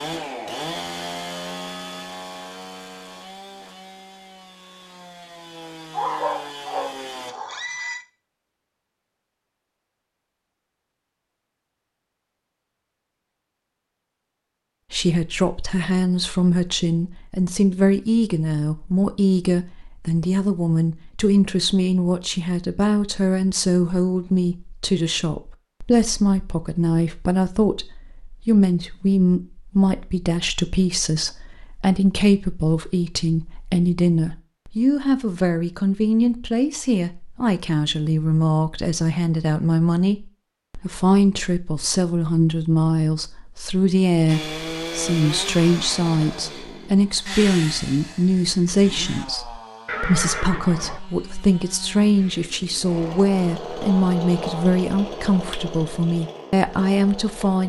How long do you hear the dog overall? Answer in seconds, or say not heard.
2 s.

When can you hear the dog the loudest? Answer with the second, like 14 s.
6 s.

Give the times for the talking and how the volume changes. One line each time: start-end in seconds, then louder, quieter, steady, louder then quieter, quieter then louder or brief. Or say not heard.
14.9-57.6 steady.